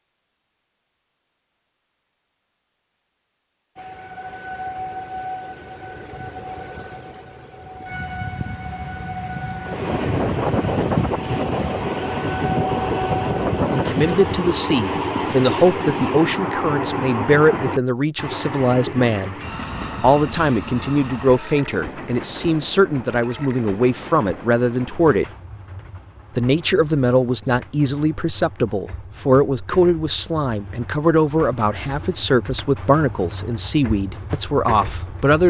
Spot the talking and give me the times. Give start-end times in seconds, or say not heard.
13.7-19.4, 20.0-25.2, 26.4-35.4.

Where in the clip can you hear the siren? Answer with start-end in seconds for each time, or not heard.
3.8-14.2.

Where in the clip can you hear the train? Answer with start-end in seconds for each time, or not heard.
9.6-35.4.